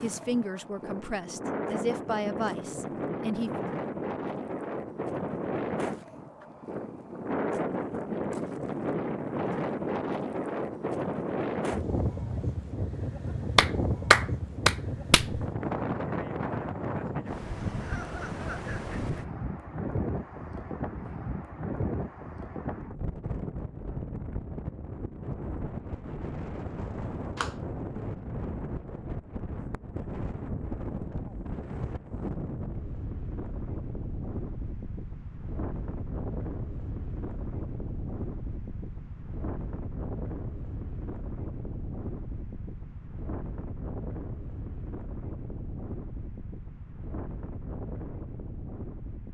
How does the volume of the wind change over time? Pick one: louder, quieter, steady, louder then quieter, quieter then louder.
quieter.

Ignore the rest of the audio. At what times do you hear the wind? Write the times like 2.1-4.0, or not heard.
0.0-49.2.